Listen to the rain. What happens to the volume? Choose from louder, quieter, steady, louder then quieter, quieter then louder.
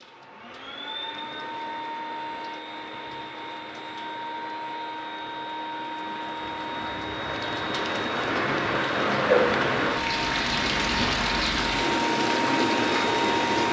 louder.